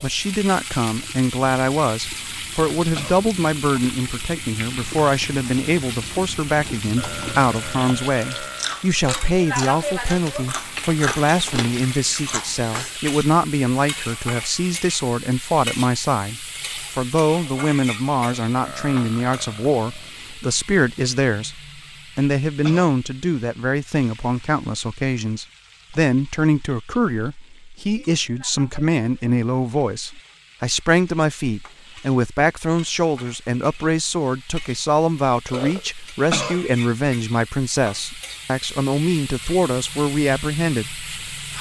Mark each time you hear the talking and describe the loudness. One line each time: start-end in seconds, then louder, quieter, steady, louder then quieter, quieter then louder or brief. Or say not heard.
0.0-41.5 steady.